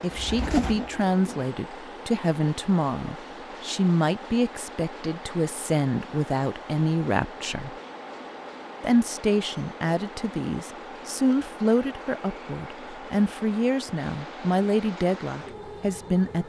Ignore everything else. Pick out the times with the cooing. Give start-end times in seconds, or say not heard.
0.0-1.5.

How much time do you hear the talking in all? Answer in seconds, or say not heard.
15 s.